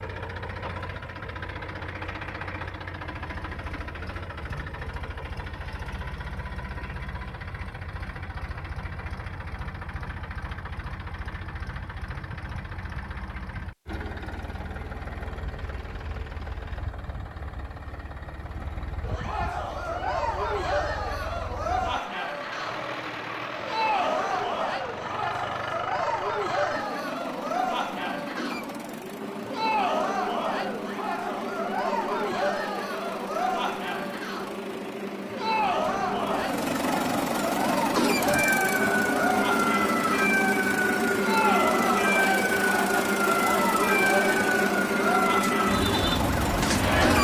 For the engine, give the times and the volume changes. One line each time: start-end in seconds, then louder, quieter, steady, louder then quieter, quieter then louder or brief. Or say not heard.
0.0-47.2 louder.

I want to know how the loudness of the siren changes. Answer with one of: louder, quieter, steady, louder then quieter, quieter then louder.
louder.